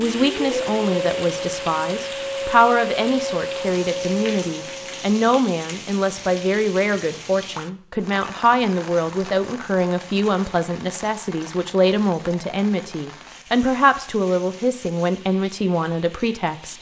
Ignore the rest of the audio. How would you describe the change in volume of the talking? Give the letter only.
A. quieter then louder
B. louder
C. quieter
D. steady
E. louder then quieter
D.